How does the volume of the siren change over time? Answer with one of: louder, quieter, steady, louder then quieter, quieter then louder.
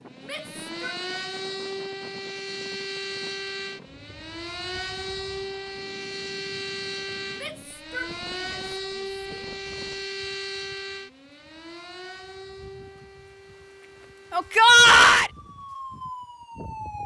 quieter.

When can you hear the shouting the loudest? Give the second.
15 s.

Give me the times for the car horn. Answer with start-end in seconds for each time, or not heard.
not heard.